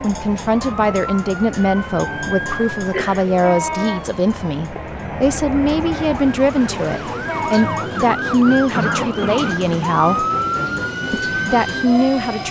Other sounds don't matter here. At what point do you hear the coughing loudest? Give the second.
9 s.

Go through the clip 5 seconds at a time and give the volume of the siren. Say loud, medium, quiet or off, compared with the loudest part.
medium, loud, loud.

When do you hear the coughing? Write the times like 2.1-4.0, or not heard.
2.5-3.2, 8.7-9.8.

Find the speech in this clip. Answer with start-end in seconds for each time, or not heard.
0.0-10.2, 11.1-12.4.